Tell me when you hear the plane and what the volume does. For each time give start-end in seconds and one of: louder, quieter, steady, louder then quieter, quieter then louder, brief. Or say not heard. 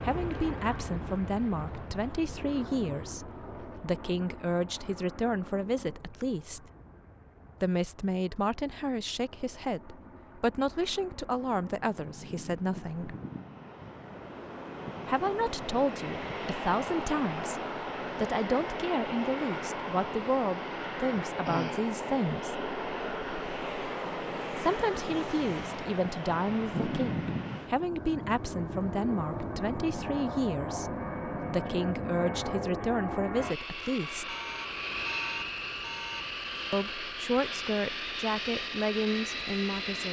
0.0-40.0 louder.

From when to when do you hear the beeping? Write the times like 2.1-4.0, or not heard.
34.2-36.3.